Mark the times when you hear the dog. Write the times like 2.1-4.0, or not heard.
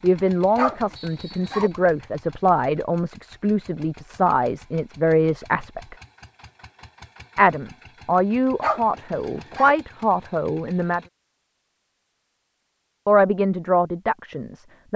0.6-1.7, 8.6-9.8.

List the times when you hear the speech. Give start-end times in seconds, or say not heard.
0.0-6.0, 7.3-11.0, 13.1-14.9.